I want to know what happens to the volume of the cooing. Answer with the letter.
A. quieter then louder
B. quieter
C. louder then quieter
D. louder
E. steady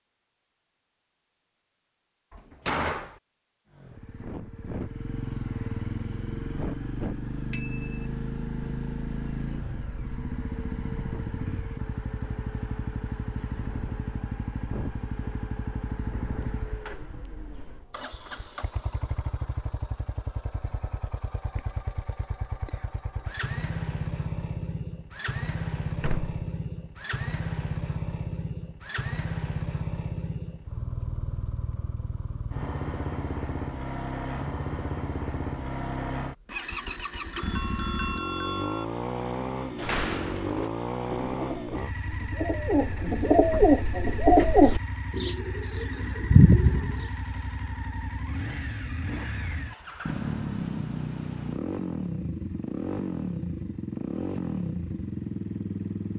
D.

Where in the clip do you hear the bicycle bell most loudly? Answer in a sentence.
The volume of the bicycle bell peaks at 38 seconds.